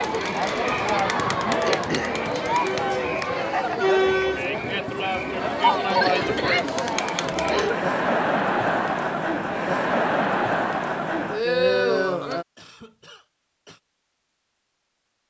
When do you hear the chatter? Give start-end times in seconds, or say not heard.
0.0-12.4.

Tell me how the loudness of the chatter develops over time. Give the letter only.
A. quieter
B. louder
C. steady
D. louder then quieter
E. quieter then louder
C.